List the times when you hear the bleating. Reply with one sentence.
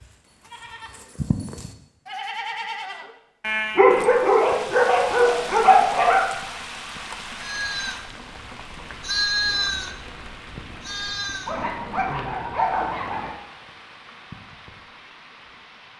The bleating can be heard from 0.0 to 4.3 s and from 7.4 to 11.6 s.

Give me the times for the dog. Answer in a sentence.
You can hear the dog from 3.8 to 6.2 s and from 11.4 to 13.3 s.